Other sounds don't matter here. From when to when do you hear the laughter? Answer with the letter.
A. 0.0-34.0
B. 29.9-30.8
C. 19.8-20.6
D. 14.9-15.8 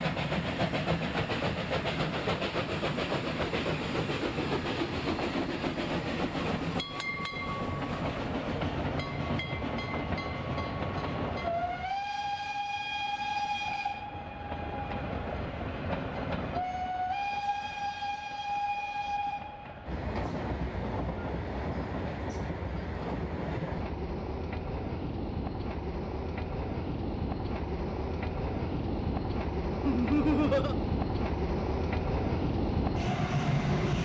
B.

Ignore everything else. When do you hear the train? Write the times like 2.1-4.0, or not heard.
0.0-34.0.